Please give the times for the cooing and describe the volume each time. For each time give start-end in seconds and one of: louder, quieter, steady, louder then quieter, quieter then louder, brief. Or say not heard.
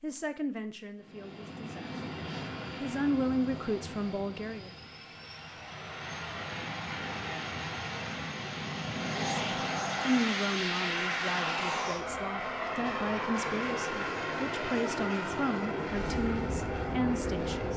not heard.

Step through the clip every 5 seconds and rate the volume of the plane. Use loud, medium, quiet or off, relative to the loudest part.
medium, loud, loud, loud.